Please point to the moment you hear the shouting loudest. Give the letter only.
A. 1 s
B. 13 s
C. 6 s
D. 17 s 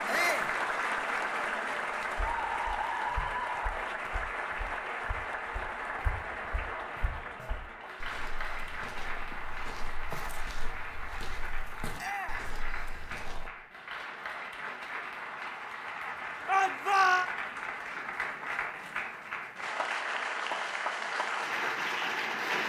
D.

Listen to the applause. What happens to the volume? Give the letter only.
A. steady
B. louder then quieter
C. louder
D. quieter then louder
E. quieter
D.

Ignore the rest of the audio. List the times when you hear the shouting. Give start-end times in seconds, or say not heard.
0.1-0.5, 11.9-12.5, 16.4-17.2.